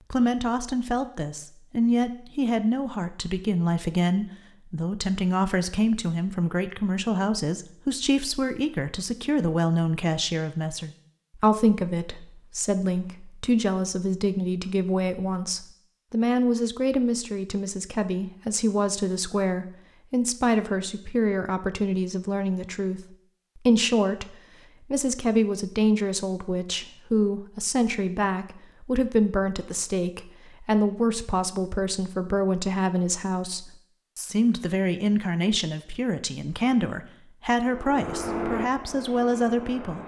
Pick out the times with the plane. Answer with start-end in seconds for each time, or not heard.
37.6-40.0.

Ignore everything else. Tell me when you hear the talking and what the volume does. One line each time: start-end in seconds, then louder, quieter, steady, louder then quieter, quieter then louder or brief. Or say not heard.
0.1-40.0 steady.